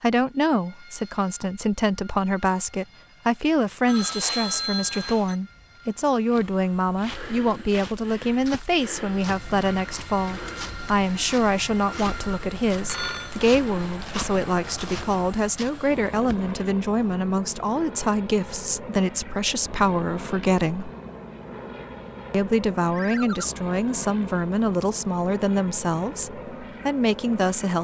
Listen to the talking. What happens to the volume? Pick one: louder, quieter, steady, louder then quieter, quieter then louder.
steady.